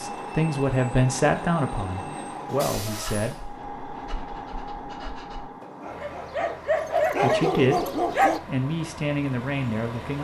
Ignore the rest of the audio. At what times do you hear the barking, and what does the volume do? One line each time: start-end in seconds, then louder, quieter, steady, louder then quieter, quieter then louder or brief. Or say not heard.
2.9-8.4 louder.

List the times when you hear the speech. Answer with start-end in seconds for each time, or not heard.
0.0-3.4, 7.2-7.8, 8.4-10.2.